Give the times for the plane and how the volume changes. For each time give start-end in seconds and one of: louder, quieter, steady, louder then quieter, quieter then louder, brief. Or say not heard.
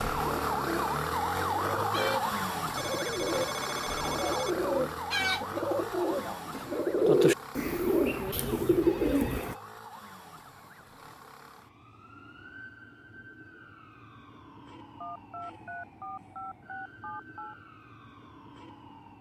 not heard.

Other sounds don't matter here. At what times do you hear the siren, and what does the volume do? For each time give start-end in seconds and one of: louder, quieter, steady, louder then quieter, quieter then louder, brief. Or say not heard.
0.0-19.1 quieter.